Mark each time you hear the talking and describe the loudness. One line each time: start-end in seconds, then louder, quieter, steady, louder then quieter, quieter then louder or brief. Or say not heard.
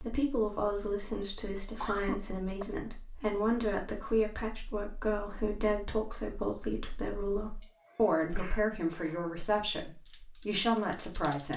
0.0-11.5 steady.